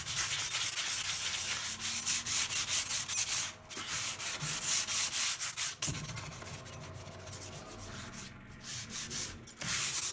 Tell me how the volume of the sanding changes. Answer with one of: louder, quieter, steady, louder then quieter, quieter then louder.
quieter.